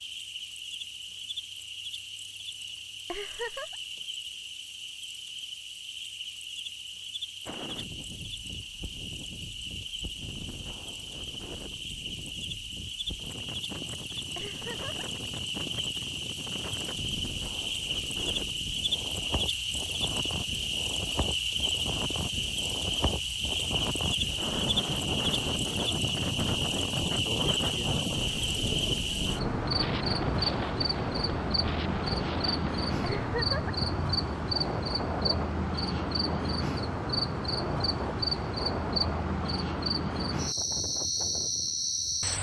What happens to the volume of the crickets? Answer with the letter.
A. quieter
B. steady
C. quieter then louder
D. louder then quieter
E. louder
E.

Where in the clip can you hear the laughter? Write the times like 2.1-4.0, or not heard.
3.0-3.8, 14.3-15.1, 33.0-33.8.